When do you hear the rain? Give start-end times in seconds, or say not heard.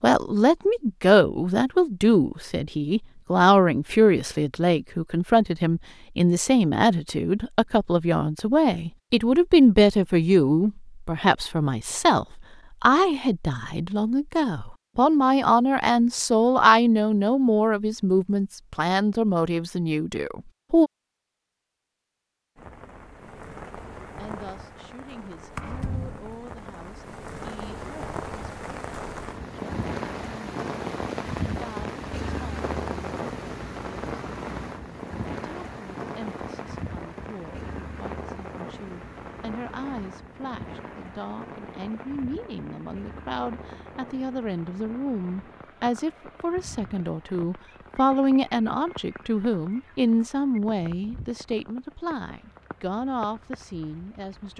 22.6-54.5.